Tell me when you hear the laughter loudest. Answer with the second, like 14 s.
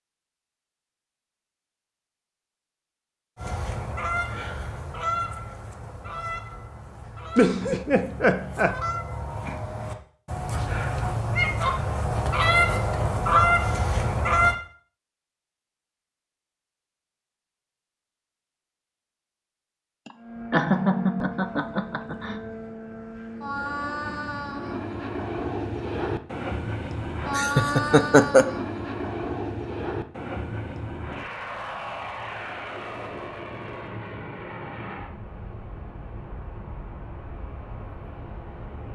28 s.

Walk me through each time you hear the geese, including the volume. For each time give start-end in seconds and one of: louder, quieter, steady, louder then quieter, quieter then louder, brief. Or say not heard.
3.4-14.6 quieter then louder.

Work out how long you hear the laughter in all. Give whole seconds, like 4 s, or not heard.
5 s.